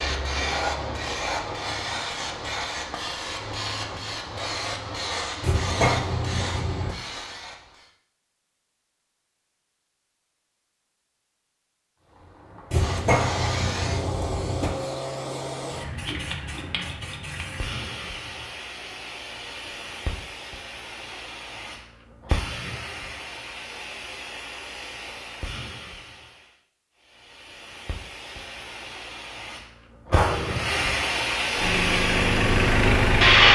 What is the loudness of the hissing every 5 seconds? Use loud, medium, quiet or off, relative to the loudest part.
medium, medium, medium, quiet, quiet, quiet, loud.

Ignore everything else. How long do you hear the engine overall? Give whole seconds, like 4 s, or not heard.
2 s.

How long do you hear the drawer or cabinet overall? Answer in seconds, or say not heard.
4 s.